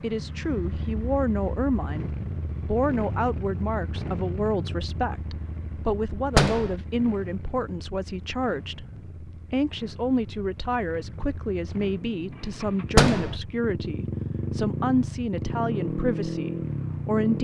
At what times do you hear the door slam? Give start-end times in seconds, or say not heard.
6.3-6.8, 12.9-13.3.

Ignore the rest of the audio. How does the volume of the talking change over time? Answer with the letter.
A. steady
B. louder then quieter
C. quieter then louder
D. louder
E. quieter
A.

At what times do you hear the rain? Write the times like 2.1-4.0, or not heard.
not heard.